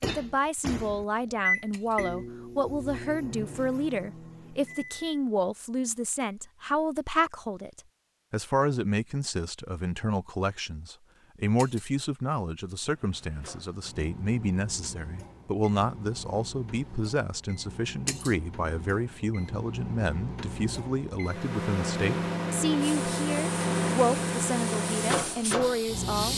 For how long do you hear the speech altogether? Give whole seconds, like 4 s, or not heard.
26 s.